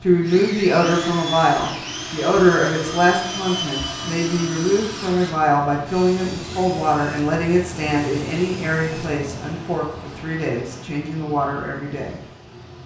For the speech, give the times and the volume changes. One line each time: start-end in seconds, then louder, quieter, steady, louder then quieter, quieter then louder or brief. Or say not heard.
0.0-12.2 quieter.